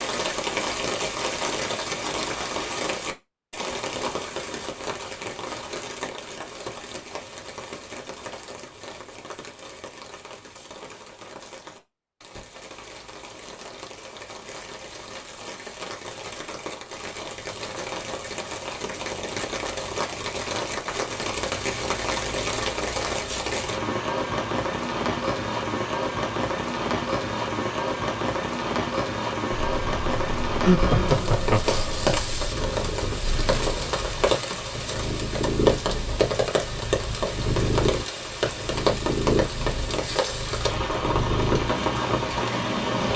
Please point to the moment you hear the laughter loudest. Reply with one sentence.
The loudest moment of the laughter is at 31 seconds.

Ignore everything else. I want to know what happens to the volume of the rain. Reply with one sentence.
The loudness of the rain goes down, then up.